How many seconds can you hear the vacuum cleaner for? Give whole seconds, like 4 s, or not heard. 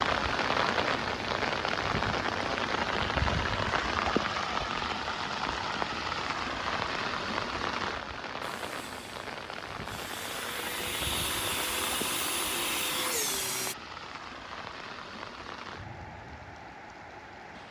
5 s.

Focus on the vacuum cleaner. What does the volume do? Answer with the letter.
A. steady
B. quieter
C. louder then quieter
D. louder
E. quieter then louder
D.